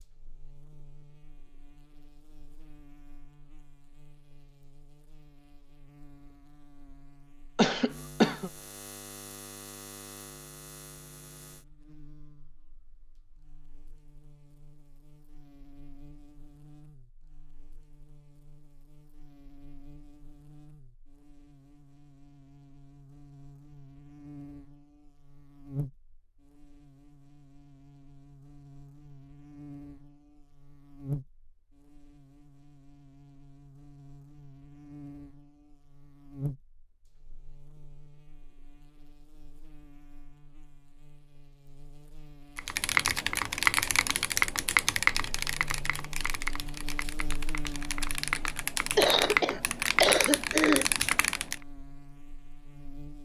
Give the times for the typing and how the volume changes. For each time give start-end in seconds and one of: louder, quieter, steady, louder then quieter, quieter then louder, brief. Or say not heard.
42.5-51.5 quieter then louder.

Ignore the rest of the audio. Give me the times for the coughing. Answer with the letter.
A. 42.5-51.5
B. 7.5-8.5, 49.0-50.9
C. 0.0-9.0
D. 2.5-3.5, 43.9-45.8
B.